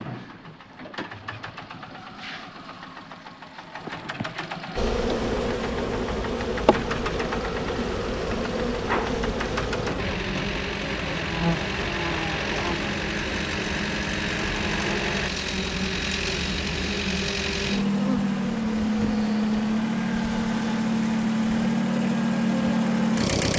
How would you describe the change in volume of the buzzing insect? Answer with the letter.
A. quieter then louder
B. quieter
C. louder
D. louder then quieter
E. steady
B.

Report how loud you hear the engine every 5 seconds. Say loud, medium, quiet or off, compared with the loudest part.
quiet, medium, medium, loud, loud.